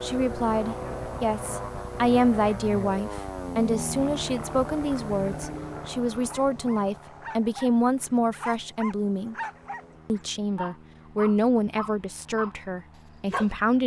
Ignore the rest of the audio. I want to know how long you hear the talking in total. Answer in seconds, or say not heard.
13 s.